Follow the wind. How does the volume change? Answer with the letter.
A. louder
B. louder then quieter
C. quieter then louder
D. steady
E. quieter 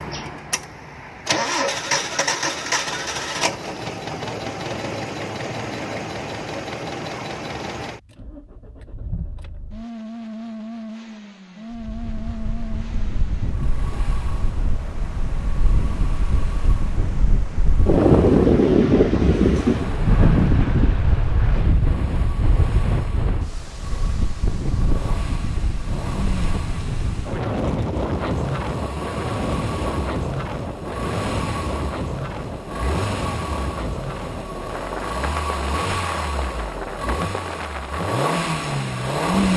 B.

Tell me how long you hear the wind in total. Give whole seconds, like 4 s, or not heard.
28 s.